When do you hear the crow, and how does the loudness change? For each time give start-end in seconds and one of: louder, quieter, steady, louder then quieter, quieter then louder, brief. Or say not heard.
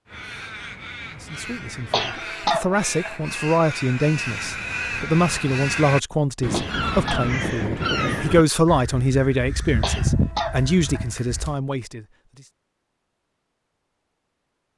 0.1-11.6 louder.